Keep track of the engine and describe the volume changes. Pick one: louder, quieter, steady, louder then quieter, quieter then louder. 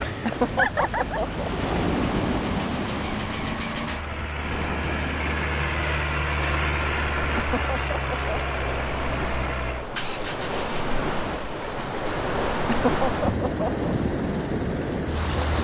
louder then quieter.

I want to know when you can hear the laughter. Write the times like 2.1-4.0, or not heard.
0.2-1.5, 7.3-8.3, 12.7-13.9.